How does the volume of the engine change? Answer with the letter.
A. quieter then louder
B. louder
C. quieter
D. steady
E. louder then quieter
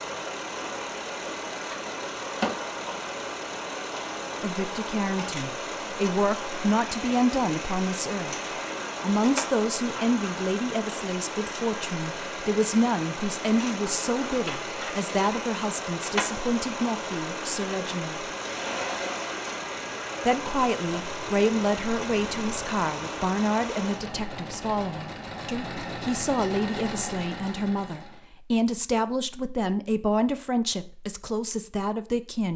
D.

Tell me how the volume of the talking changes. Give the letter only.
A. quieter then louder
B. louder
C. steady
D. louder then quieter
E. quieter
C.